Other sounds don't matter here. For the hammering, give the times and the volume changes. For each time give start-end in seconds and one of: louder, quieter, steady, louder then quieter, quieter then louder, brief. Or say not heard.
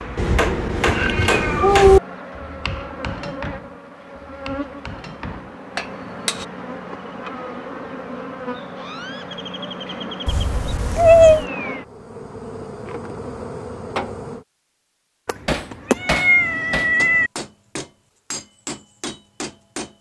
0.0-6.5 quieter then louder
15.4-19.9 quieter.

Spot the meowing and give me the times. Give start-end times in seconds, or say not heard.
0.1-2.0, 10.2-11.4, 15.2-17.3.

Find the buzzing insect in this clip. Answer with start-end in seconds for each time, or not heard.
0.0-14.4.